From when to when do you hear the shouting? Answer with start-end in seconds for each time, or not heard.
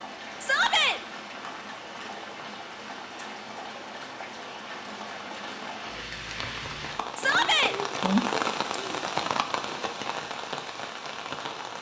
0.4-1.0, 7.2-7.8.